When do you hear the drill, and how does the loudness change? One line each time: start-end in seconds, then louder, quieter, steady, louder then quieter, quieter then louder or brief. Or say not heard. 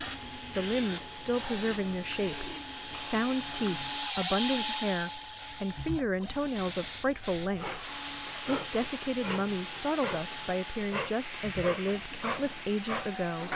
0.0-13.5 louder then quieter.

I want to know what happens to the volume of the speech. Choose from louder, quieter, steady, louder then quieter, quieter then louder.
steady.